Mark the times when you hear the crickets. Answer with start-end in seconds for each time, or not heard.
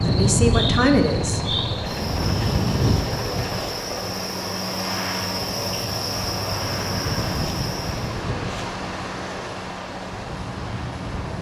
0.0-8.2.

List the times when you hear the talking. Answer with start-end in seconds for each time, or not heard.
0.0-1.6.